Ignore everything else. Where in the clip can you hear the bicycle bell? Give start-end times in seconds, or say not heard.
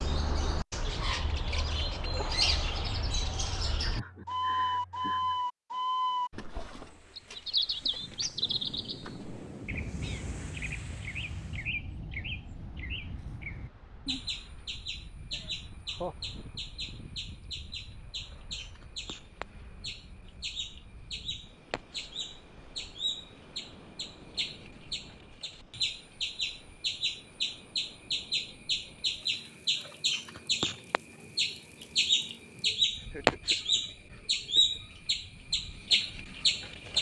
not heard.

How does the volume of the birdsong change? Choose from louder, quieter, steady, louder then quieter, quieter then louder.
quieter then louder.